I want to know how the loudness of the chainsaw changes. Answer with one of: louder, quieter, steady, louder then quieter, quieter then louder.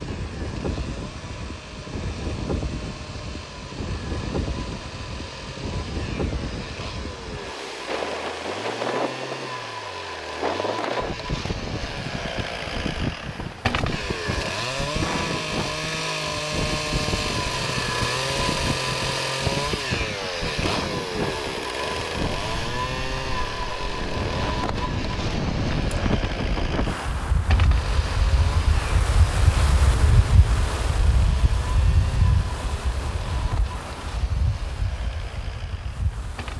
louder then quieter.